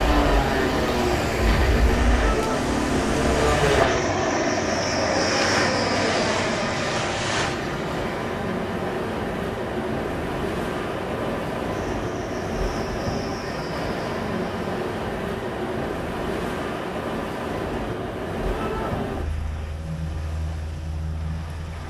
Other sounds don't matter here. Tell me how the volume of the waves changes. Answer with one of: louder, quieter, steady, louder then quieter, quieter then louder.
steady.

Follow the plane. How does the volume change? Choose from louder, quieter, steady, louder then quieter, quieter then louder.
quieter.